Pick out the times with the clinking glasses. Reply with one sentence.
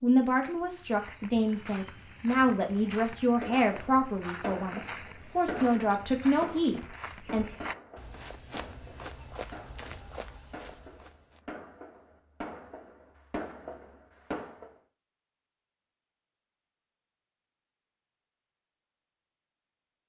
You can't hear the clinking glasses here.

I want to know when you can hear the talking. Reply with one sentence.
The talking can be heard from 0.0 to 7.5 s.